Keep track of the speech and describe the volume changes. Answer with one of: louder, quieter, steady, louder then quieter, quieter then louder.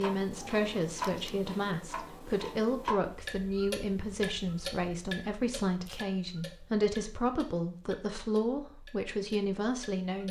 steady.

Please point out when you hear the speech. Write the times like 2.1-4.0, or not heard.
0.0-10.2.